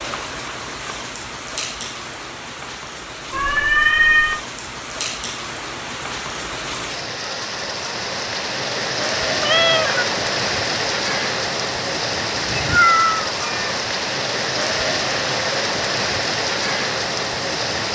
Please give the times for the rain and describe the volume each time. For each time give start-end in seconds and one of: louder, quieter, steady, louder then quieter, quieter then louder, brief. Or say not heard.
0.0-17.9 louder.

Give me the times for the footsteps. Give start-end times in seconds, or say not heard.
not heard.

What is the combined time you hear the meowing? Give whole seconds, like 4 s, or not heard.
3 s.